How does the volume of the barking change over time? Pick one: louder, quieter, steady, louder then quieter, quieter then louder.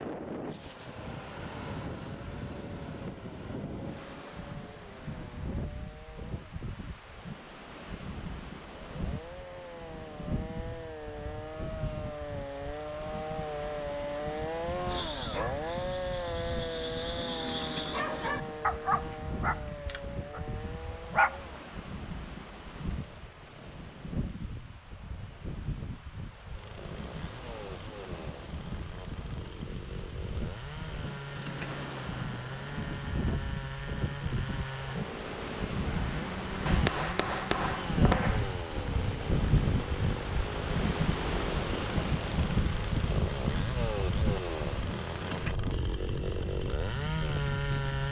louder then quieter.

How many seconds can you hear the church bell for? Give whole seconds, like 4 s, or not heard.
not heard.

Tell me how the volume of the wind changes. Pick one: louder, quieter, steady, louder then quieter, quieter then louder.
louder.